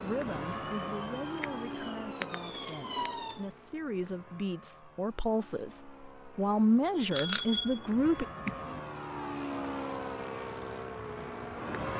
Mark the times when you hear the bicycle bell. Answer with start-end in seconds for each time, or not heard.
1.4-3.2, 7.1-8.8.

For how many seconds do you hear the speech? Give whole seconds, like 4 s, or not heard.
8 s.